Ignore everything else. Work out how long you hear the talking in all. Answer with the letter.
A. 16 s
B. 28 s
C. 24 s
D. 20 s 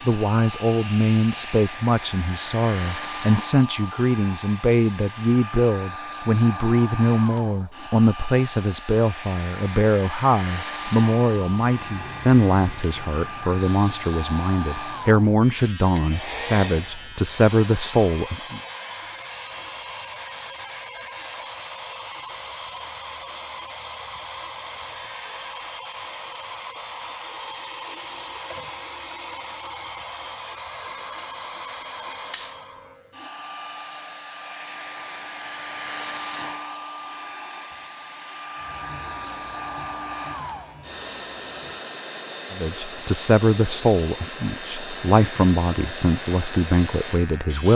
C.